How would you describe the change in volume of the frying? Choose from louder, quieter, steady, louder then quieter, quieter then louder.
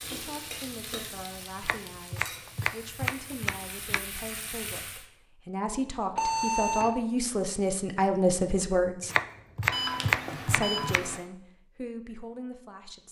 quieter then louder.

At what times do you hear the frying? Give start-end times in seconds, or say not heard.
0.0-5.0.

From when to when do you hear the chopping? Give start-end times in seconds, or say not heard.
1.6-4.0, 9.0-11.2.